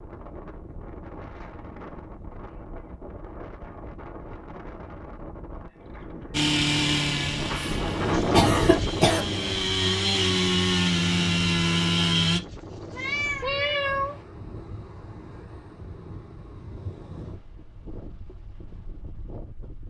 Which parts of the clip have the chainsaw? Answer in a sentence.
You can hear the chainsaw from 6.3 to 12.4 s.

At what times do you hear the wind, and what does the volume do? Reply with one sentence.
The wind can be heard from 0.0 to 19.8 s, getting louder then quieter.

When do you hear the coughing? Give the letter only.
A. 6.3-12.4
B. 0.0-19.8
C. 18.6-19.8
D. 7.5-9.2
D.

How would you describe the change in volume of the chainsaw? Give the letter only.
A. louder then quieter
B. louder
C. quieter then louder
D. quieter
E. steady
C.